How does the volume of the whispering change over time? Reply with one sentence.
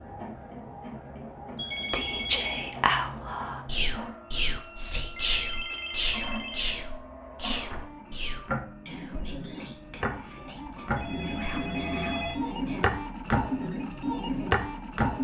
The volume of the whispering goes down.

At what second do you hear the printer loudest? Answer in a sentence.
The volume of the printer peaks at 15 seconds.